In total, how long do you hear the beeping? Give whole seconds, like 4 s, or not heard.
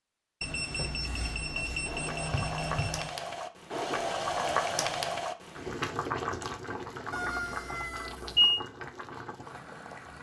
4 s.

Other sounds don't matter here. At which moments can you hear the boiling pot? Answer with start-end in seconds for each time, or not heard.
1.6-10.1.